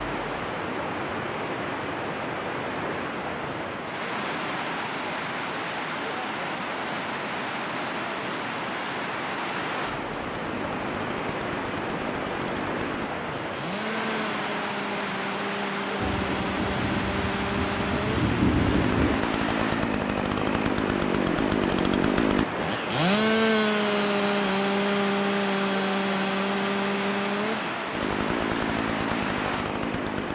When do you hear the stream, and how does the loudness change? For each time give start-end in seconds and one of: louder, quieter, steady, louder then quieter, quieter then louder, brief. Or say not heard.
0.0-30.2 steady.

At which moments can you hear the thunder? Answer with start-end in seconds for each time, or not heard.
15.9-19.2.